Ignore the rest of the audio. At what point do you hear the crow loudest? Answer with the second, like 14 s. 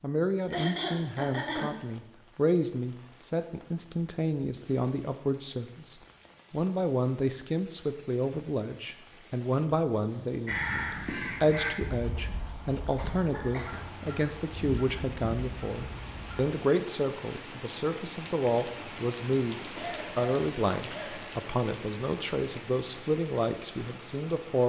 11 s.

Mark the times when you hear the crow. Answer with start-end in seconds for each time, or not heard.
10.4-16.5.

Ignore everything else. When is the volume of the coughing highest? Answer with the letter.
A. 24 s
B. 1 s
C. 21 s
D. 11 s
B.